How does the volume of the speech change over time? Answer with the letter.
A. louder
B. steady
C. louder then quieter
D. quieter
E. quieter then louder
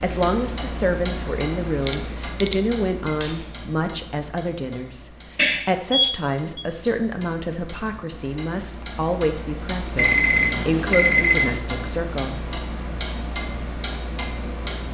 B.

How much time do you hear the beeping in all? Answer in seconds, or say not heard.
4 s.